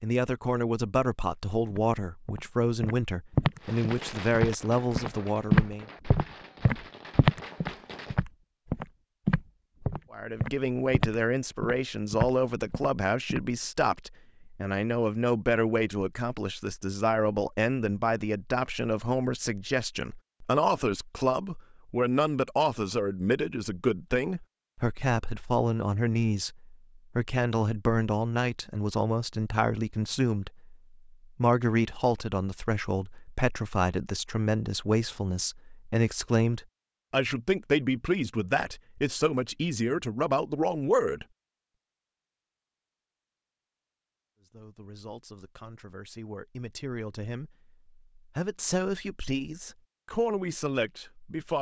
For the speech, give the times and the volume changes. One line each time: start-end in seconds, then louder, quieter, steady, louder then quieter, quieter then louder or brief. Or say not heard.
0.0-5.8 steady
10.1-41.2 steady
44.4-51.5 louder.